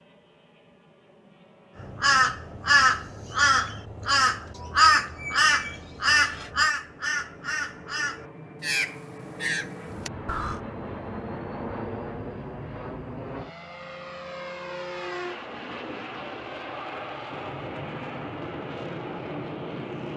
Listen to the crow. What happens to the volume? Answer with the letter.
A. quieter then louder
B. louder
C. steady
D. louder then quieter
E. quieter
E.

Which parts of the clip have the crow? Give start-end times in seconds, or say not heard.
1.8-10.6.